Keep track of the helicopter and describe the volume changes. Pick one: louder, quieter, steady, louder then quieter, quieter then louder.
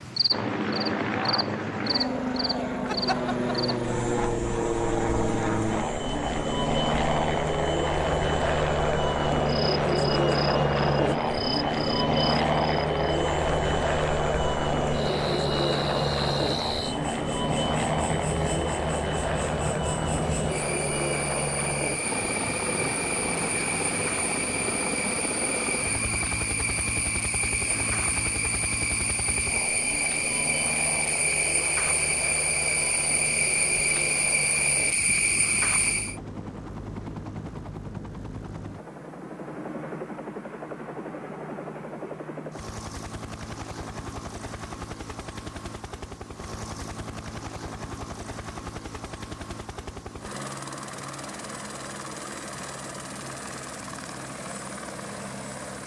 quieter.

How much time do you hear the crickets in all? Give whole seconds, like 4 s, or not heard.
36 s.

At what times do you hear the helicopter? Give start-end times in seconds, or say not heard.
0.0-55.8.